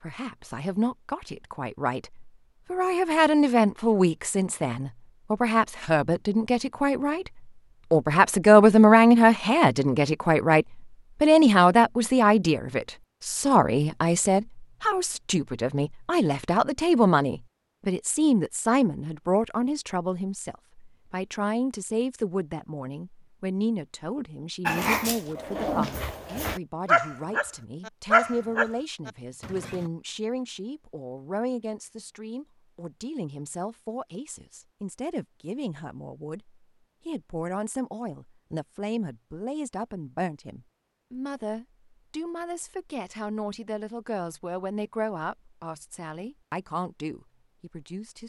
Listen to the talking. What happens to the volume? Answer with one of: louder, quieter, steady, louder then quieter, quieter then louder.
quieter.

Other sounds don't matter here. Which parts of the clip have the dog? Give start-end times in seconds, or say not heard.
24.6-29.9.